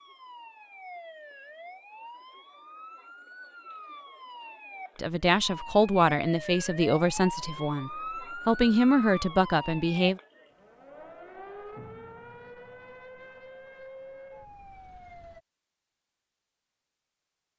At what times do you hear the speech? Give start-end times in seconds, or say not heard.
5.0-10.2.